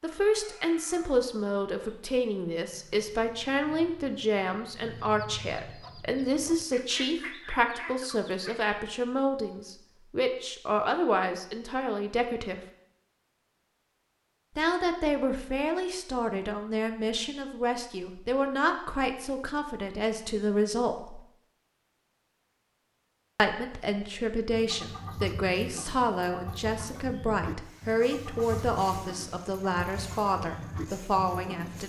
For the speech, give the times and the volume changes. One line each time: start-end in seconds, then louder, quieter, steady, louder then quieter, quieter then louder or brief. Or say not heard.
0.0-12.6 steady
14.6-21.2 steady
23.4-31.8 steady.